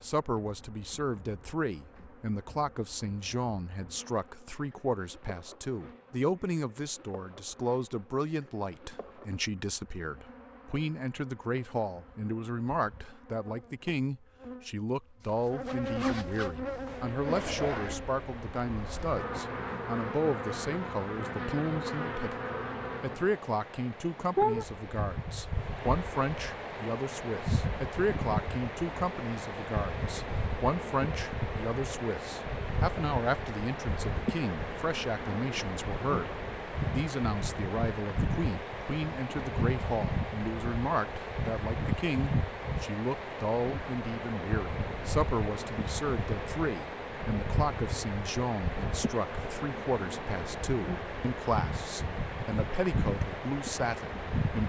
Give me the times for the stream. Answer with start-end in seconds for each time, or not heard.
16.9-54.6.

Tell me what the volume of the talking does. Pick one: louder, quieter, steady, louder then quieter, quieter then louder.
steady.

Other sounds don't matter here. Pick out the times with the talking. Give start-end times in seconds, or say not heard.
0.0-54.6.